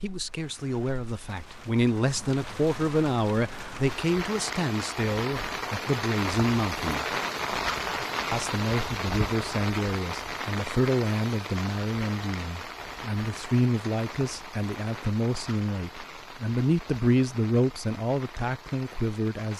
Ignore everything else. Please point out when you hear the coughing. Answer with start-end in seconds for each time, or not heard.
not heard.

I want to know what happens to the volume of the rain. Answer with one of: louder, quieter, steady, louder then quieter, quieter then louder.
louder then quieter.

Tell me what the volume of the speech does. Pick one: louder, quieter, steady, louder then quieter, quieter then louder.
steady.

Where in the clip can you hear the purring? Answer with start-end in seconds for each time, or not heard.
not heard.